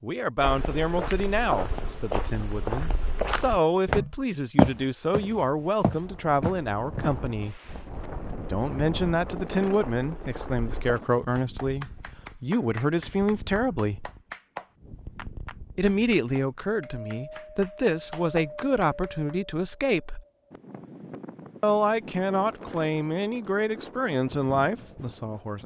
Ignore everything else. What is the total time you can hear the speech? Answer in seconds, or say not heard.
22 s.